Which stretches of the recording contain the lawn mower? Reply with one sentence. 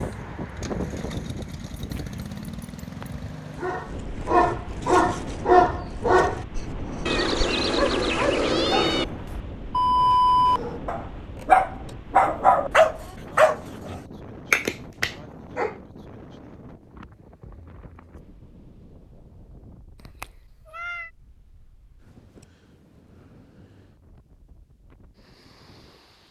You can hear the lawn mower from 0.0 to 3.9 s.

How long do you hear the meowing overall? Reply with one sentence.
The meowing can be heard for 3 seconds in total.